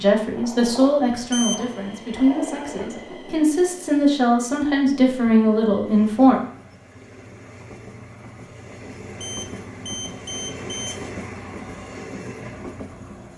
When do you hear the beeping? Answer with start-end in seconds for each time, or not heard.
1.3-1.8, 9.2-11.0.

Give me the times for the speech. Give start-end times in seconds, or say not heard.
0.0-6.4.